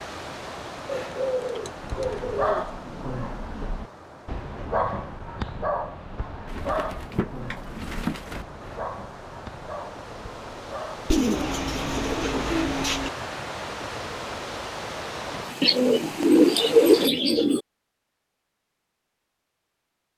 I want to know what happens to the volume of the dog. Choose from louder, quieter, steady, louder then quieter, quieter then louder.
quieter.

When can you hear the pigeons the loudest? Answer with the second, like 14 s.
17 s.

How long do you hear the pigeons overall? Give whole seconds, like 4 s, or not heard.
8 s.